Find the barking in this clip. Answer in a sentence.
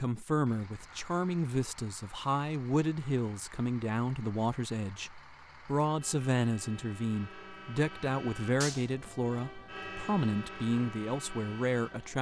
You can't hear the barking here.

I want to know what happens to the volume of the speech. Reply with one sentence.
The volume of the speech stays about the same.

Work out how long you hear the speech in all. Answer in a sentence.
The speech can be heard for 12 seconds in total.